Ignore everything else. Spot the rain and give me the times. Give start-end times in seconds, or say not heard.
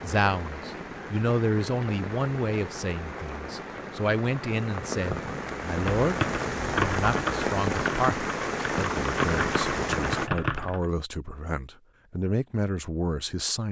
0.0-10.3.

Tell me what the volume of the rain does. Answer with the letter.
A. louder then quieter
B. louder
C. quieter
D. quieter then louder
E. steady
B.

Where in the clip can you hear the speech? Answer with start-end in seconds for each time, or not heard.
0.0-13.6.